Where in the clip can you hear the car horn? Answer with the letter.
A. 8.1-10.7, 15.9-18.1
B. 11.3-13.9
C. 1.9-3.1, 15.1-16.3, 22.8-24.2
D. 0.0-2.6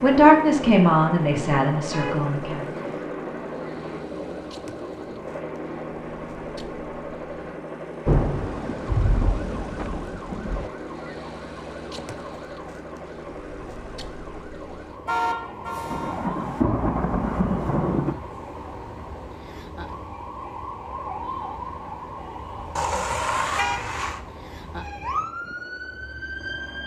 C.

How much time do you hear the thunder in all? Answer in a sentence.
You can hear the thunder for 5 seconds altogether.